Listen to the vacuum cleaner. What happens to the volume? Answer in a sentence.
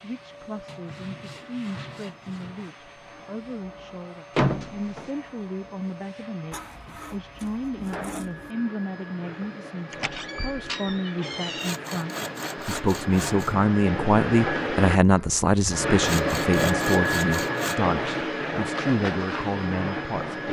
The loudness of the vacuum cleaner goes up.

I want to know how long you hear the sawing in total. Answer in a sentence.
You can hear the sawing for 8 seconds altogether.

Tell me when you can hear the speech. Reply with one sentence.
You can hear the speech from 0.0 to 20.4 s.